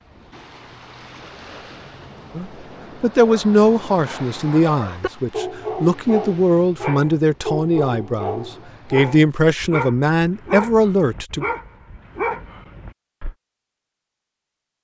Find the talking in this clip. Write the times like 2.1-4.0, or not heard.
2.4-11.4.